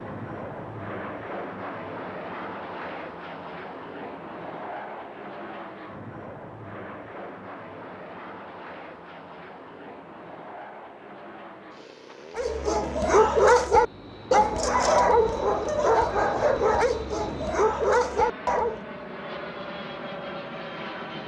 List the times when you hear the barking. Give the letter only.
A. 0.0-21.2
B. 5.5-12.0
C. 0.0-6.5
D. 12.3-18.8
D.